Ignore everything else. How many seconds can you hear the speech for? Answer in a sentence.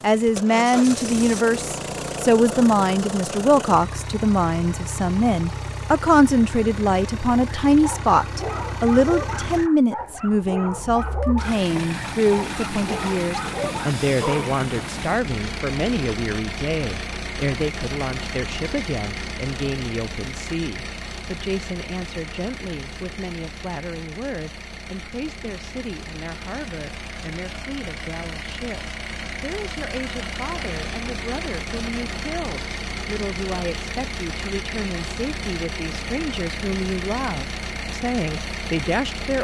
You can hear the speech for 39 seconds altogether.